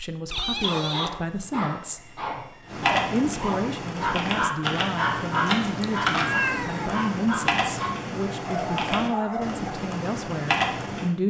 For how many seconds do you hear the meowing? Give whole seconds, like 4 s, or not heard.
2 s.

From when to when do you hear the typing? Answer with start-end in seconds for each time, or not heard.
2.6-11.1.